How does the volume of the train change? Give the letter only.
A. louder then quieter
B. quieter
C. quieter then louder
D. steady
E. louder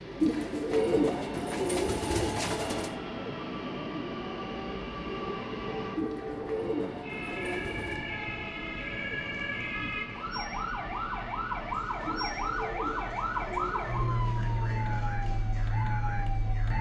B.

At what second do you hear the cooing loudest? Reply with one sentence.
The volume of the cooing peaks at 1 second.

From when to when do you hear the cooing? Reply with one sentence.
You can hear the cooing from 0.2 to 3.0 s, from 6.0 to 8.1 s and from 12.1 to 14.8 s.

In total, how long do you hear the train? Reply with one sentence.
You can hear the train for 17 seconds altogether.